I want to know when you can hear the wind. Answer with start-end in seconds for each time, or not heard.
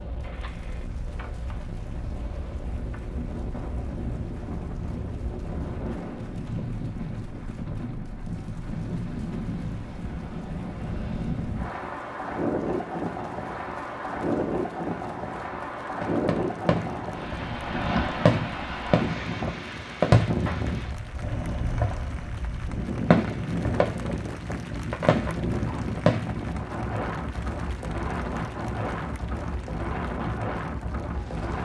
0.0-31.6.